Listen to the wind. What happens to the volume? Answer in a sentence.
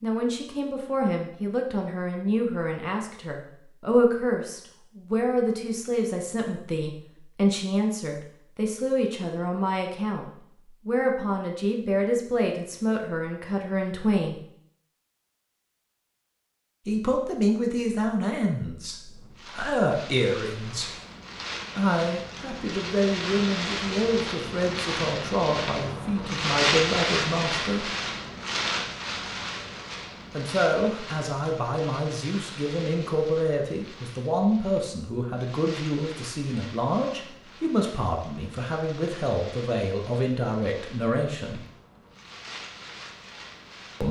The loudness of the wind goes up, then down.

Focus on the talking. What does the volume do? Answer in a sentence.
The volume of the talking stays about the same.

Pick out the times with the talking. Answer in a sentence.
You can hear the talking from 0.0 to 14.4 s, from 16.9 to 20.9 s, from 21.8 to 27.9 s and from 30.3 to 41.6 s.